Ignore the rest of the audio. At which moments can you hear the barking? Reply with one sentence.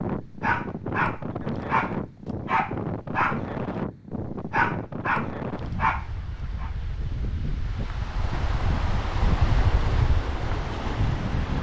The barking can be heard from 0.2 to 6.7 s.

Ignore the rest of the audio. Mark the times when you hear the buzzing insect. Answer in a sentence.
You can't hear the buzzing insect here.